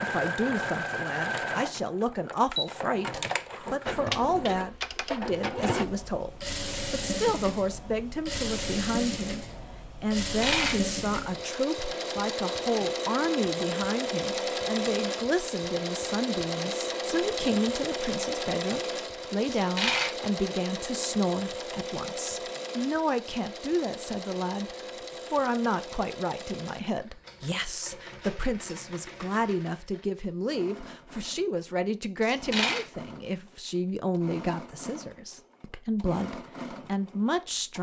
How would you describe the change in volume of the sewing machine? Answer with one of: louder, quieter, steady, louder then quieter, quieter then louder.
quieter.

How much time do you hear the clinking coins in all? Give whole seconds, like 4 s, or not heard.
2 s.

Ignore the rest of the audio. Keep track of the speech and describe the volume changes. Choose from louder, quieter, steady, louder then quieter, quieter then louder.
steady.